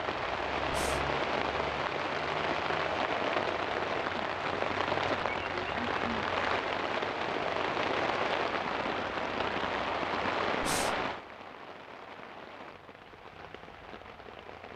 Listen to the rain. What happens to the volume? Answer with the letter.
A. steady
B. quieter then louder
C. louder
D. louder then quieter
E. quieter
E.